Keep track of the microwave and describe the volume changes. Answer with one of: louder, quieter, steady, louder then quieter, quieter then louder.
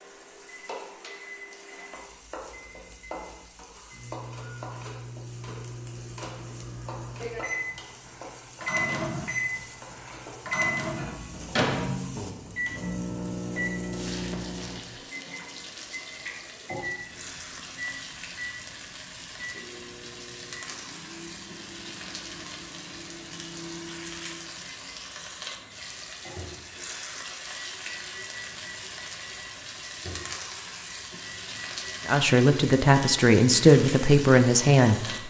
louder then quieter.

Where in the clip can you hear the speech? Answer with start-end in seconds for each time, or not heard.
32.0-35.2.